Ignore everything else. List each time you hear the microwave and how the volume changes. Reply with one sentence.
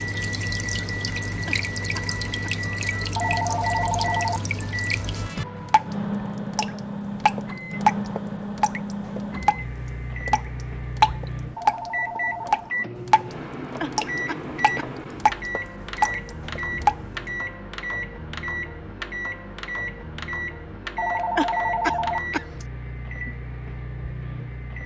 You can hear the microwave from 0.0 to 24.8 s, at a steady volume.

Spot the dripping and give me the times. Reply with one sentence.
You can hear the dripping from 0.0 to 17.4 s.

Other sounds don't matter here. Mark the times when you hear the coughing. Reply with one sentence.
The coughing can be heard from 1.4 to 2.5 s, from 13.8 to 14.9 s and from 21.4 to 22.4 s.